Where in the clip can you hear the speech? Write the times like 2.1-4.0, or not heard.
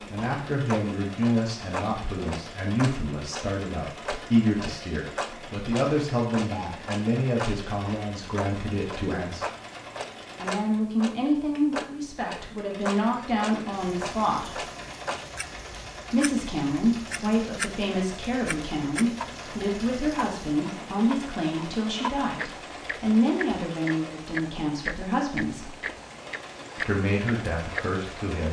0.1-9.4, 10.3-14.7, 16.1-25.8, 26.8-28.4.